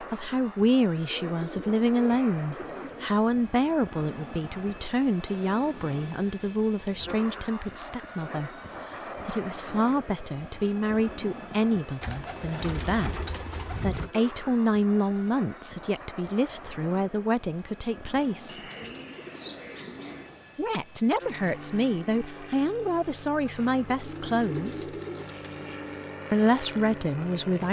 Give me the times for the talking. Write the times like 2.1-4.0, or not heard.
0.0-8.5, 9.2-18.6, 20.6-24.9, 26.3-27.6.